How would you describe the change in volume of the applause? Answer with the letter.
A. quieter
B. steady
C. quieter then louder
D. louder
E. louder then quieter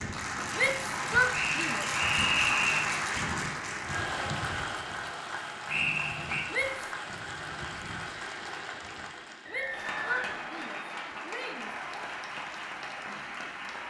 A.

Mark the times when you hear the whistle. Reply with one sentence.
You can hear the whistle from 1.3 to 3.0 s, from 5.7 to 6.4 s and from 9.4 to 10.4 s.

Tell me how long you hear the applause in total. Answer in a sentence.
You can hear the applause for 14 seconds altogether.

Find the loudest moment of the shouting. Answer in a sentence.
The volume of the shouting peaks at 1 second.